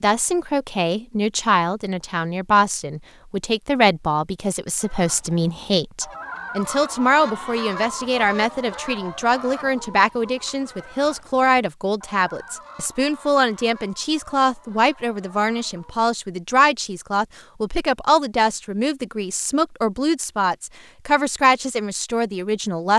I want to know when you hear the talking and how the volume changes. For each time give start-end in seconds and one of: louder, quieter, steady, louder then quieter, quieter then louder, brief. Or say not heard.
0.0-22.9 steady.